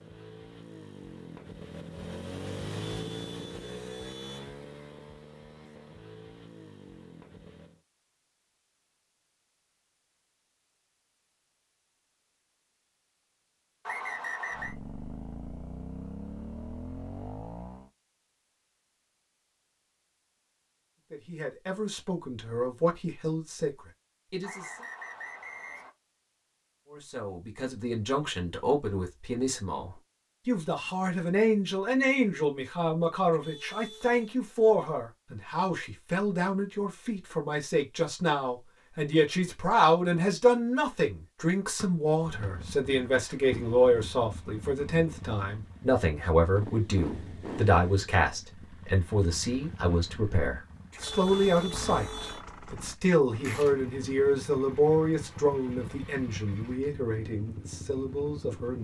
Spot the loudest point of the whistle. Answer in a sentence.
The loudest moment of the whistle is at 14 seconds.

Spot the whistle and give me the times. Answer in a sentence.
The whistle can be heard from 13.8 to 14.8 s, from 24.4 to 25.9 s and from 41.8 to 42.5 s.